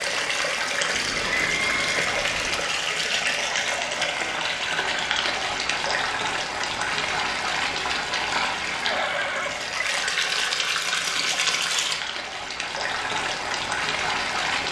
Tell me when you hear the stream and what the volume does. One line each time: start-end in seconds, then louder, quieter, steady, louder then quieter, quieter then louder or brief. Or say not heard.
0.0-14.6 steady.